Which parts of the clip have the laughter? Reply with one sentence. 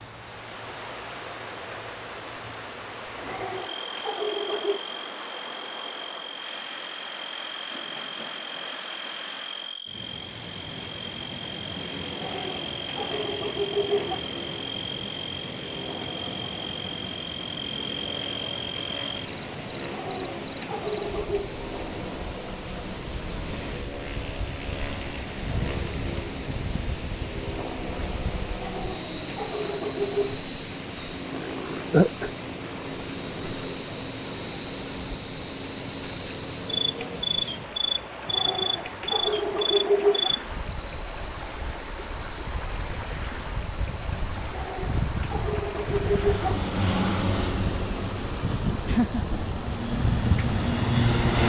The laughter can be heard from 48.9 to 49.4 s.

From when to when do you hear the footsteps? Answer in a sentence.
You can't hear the footsteps here.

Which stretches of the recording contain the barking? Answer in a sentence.
You can hear the barking from 3.1 to 4.8 s, from 12.1 to 14.2 s, from 19.8 to 21.5 s, from 28.6 to 30.4 s, from 38.2 to 40.3 s and from 44.5 to 46.7 s.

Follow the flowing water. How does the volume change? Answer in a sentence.
The volume of the flowing water stays about the same.